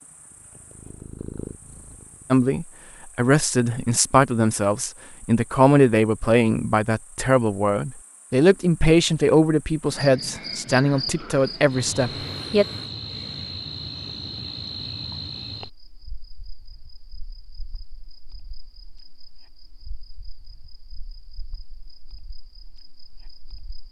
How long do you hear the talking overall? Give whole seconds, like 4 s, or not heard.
10 s.